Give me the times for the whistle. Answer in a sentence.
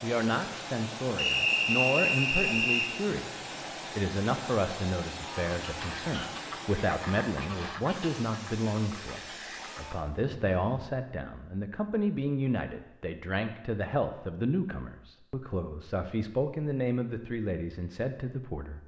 You can hear the whistle from 1.1 to 2.9 s.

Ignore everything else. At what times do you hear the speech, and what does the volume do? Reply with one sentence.
You can hear the speech from 0.0 to 18.8 s, at a steady volume.